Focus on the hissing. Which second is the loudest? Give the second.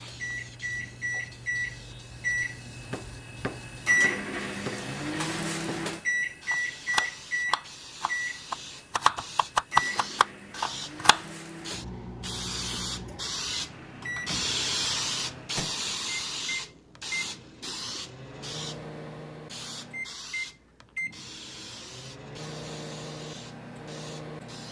15 s.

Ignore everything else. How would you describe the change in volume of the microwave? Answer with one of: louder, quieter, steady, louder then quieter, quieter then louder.
quieter.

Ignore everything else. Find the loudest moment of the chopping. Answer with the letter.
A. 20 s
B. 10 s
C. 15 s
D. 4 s
B.